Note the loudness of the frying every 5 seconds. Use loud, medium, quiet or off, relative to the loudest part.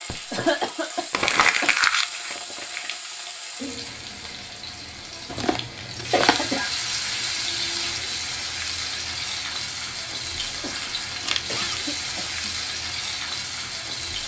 medium, loud, loud.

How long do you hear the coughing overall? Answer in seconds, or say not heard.
4 s.